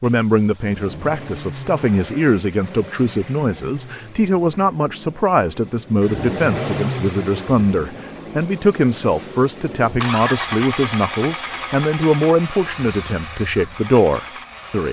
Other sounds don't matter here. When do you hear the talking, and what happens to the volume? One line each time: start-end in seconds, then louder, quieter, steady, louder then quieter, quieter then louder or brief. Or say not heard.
0.0-14.8 steady.